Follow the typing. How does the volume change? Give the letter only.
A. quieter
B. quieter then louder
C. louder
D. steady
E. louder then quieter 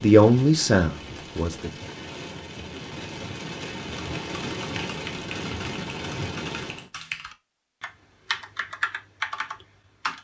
C.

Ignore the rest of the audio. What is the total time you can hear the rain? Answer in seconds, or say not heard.
7 s.